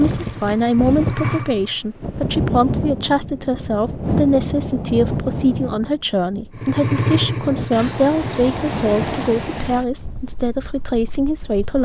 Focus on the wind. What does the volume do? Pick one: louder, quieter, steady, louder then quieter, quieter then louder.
quieter.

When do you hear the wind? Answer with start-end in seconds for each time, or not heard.
0.0-11.8.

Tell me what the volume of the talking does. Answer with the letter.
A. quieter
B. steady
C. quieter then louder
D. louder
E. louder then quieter
B.